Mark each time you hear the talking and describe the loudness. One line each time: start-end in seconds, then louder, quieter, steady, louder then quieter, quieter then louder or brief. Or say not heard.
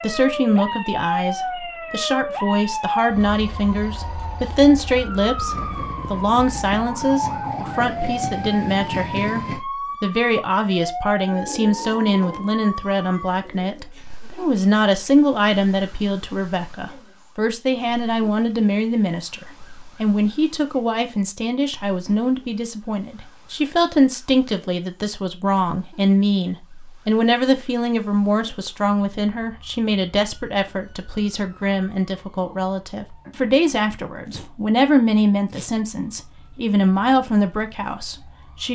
0.0-38.7 steady.